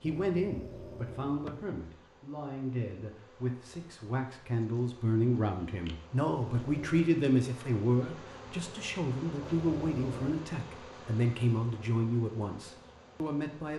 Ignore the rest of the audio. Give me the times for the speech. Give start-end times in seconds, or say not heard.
0.0-13.7.